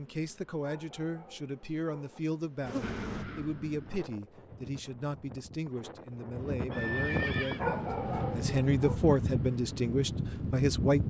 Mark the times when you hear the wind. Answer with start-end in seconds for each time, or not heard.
2.8-11.0.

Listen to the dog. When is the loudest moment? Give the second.
8 s.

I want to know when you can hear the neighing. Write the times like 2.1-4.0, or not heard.
6.7-7.6.